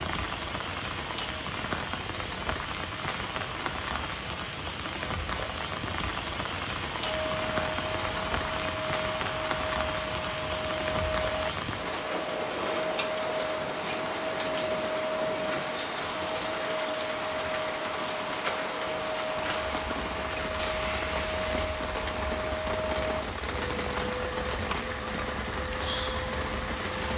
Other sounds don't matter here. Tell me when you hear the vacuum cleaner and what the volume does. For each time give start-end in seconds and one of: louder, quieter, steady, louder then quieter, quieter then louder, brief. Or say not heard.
7.0-27.1 steady.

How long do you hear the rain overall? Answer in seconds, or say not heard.
27 s.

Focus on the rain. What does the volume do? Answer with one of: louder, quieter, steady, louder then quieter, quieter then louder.
steady.